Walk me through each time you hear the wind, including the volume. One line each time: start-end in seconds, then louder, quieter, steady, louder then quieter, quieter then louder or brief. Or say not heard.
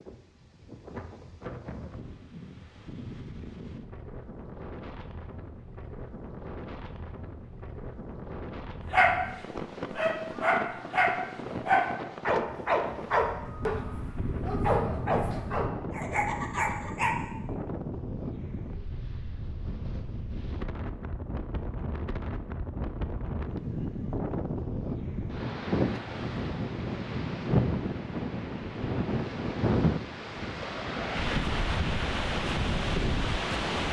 0.0-33.8 louder.